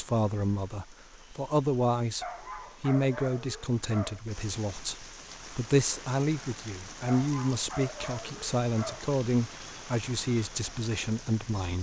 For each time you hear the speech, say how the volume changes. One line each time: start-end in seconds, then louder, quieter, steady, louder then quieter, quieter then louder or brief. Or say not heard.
0.0-11.7 steady.